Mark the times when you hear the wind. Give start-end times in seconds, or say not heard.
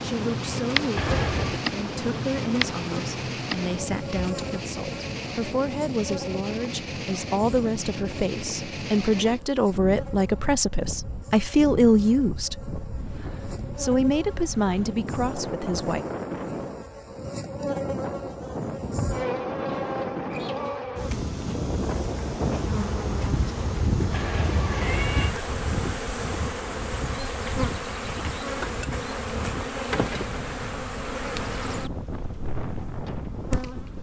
0.0-33.9.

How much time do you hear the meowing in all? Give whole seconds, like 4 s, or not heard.
2 s.